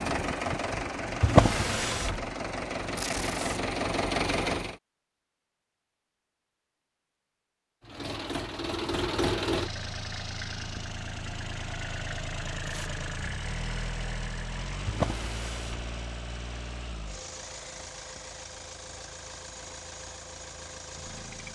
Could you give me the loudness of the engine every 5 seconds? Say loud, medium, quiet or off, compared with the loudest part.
loud, loud, medium, medium, medium.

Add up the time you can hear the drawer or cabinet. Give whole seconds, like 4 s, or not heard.
2 s.